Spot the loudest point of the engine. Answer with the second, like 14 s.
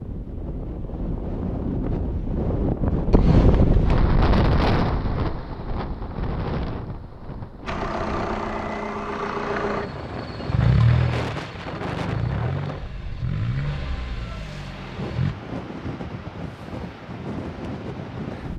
11 s.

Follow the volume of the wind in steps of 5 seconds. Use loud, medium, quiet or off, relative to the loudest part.
loud, medium, medium, medium.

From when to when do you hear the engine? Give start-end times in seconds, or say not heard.
7.7-15.3.